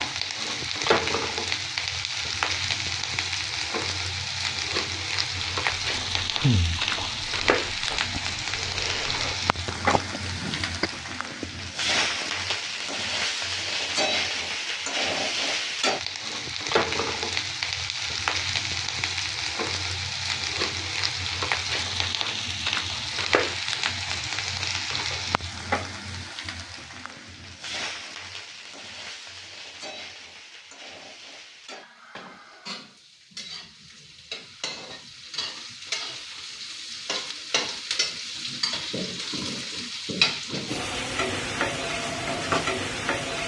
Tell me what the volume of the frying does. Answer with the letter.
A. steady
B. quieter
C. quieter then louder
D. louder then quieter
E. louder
C.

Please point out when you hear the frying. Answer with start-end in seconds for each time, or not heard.
0.0-43.4.